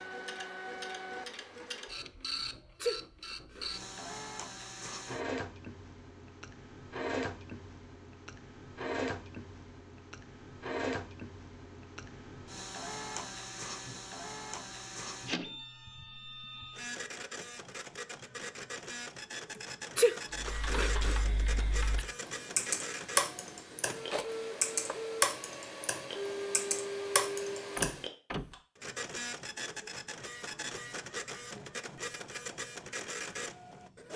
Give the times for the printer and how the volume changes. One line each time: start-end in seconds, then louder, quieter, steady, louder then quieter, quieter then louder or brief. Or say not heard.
0.0-34.1 steady.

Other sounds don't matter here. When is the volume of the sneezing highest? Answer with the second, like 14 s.
20 s.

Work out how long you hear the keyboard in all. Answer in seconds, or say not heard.
8 s.